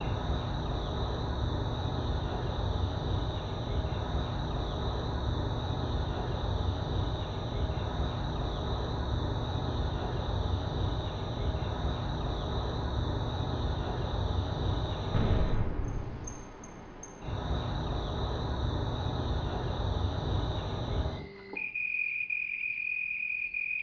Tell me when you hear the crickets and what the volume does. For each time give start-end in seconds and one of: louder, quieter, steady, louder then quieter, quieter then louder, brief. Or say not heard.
0.0-23.7 steady.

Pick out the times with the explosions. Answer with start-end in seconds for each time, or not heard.
15.1-16.4.